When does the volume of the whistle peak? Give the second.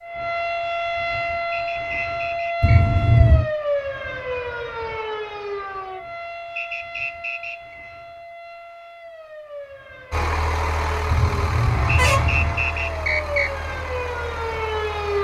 13 s.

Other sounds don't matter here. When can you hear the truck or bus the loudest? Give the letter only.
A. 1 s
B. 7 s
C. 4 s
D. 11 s
D.